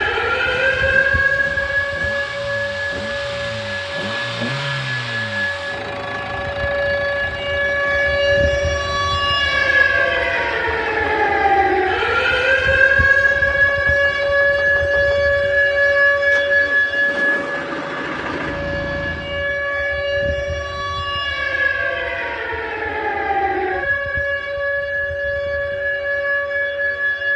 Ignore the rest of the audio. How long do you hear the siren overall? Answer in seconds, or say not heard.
27 s.